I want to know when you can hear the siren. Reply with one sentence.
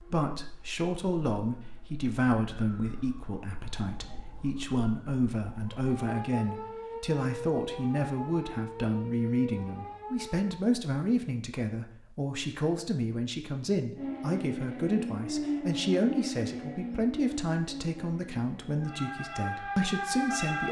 The siren can be heard from 0.0 to 10.6 s and from 13.9 to 20.6 s.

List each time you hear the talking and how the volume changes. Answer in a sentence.
You can hear the talking from 0.0 to 20.6 s, at a steady volume.